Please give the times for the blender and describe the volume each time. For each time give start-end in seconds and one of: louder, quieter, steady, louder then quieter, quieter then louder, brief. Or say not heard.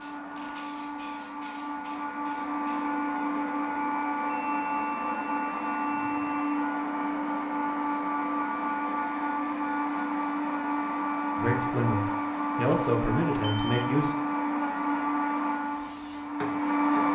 0.0-17.1 steady.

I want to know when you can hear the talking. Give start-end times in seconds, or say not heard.
11.3-14.2.